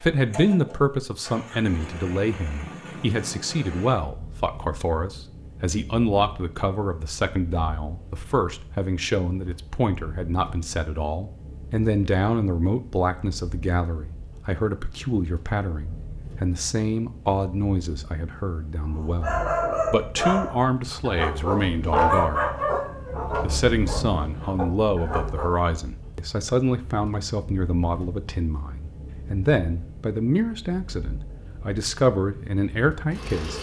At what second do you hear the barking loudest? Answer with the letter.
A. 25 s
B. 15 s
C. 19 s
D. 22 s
D.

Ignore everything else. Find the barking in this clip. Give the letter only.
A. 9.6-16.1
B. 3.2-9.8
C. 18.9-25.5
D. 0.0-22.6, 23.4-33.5
C.